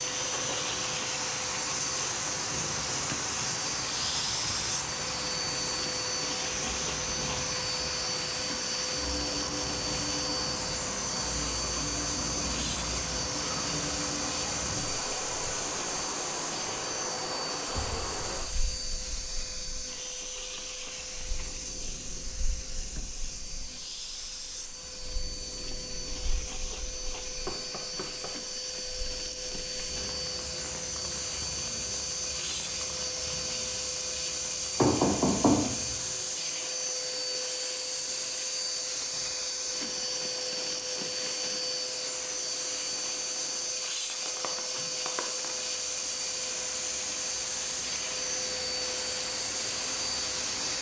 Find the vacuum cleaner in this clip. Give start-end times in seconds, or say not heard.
0.0-50.7.